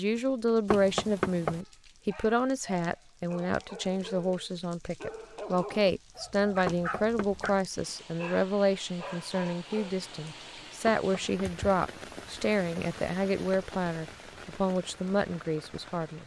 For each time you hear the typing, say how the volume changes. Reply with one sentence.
You can't hear the typing here.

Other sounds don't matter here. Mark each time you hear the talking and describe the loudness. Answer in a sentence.
The talking can be heard from 0.0 to 16.2 s, at a steady volume.